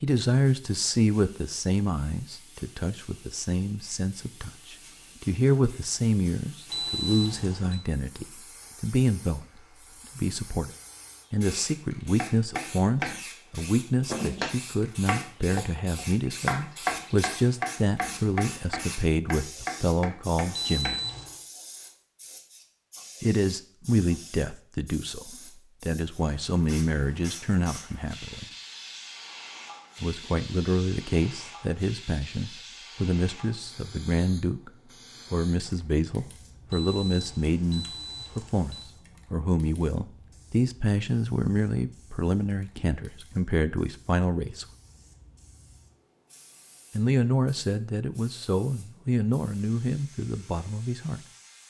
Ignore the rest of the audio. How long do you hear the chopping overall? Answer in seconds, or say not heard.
8 s.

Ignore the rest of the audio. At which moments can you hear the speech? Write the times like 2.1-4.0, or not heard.
0.0-10.7, 11.3-21.0, 23.2-28.4, 30.0-34.7, 35.3-44.6, 46.9-51.2.